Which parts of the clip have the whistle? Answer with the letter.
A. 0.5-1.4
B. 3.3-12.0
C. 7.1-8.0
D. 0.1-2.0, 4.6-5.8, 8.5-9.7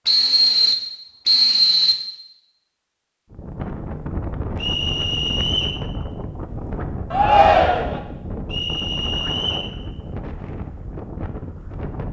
D.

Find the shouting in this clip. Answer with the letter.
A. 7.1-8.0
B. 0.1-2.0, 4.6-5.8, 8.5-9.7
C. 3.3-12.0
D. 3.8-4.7
A.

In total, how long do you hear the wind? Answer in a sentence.
The wind can be heard for 9 seconds in total.